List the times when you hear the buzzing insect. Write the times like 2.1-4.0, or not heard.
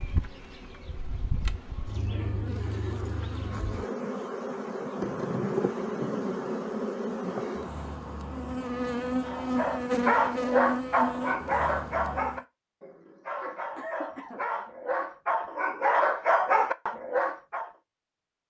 0.0-12.4.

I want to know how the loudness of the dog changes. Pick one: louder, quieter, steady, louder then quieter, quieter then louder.
quieter then louder.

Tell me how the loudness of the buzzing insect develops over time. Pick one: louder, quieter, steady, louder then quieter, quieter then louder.
louder.